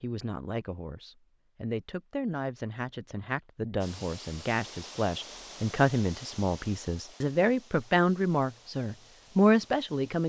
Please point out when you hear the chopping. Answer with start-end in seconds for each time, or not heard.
not heard.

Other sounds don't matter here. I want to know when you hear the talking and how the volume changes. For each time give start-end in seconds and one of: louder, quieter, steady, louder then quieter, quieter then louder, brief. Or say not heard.
0.0-10.2 louder.